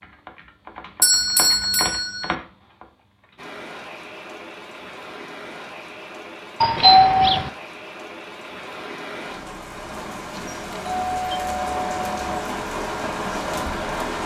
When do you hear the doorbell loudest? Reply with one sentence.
The loudest moment of the doorbell is at 7 seconds.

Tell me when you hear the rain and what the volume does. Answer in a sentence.
You can hear the rain from 3.4 to 14.2 s, getting louder.